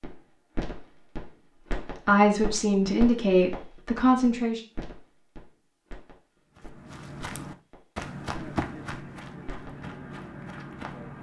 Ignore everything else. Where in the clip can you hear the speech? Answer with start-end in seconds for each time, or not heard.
2.0-4.6.